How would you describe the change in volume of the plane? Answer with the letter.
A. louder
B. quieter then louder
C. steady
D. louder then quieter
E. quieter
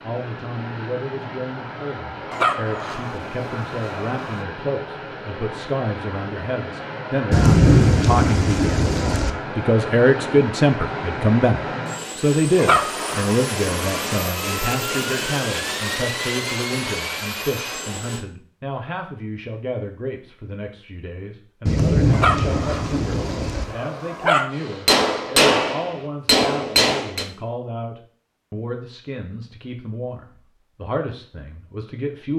A.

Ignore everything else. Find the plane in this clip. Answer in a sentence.
You can hear the plane from 0.0 to 18.2 s.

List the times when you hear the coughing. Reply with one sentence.
The coughing can't be heard in this clip.